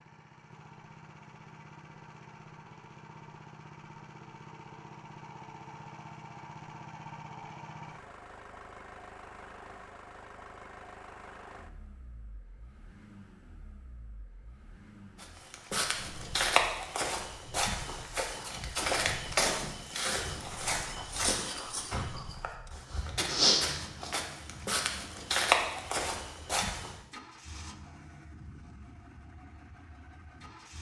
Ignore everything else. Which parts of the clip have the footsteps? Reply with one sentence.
The footsteps can be heard from 15.2 to 26.9 s.